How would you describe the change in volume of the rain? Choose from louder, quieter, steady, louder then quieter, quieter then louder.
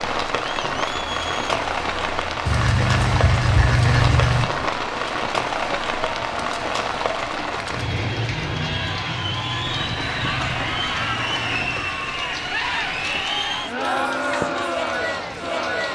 quieter.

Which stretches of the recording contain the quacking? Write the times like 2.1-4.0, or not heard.
2.5-4.5, 9.7-11.8.